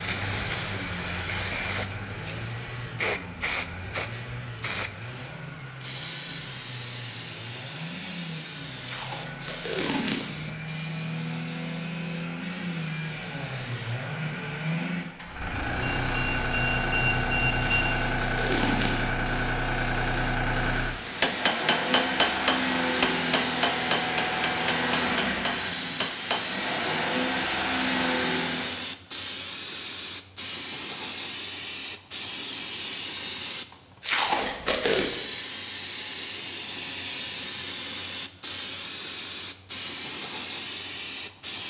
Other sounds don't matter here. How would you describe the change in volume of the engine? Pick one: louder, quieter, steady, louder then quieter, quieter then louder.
louder.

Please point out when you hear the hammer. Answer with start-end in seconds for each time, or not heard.
21.1-26.4.